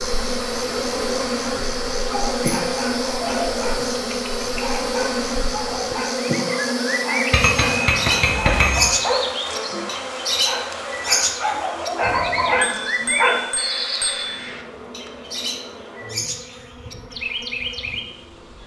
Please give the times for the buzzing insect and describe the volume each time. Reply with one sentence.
The buzzing insect can be heard from 0.0 to 18.6 s, getting quieter.